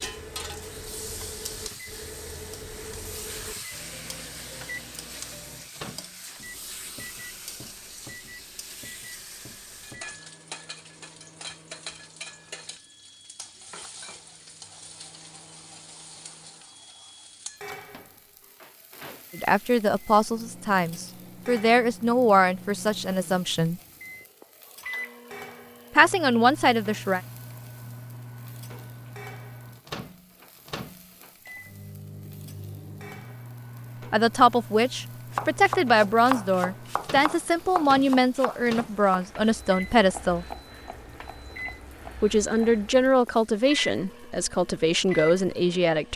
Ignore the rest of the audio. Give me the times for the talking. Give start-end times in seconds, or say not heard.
19.4-23.8, 25.9-27.2, 34.1-40.5, 42.2-46.1.